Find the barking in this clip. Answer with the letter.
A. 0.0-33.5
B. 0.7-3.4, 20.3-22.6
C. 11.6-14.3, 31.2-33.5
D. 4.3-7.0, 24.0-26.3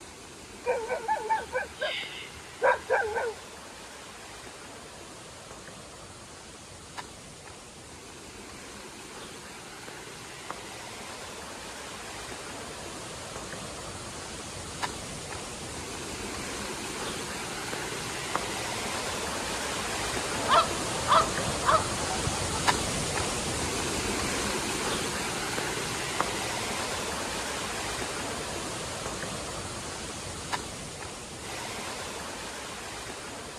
B.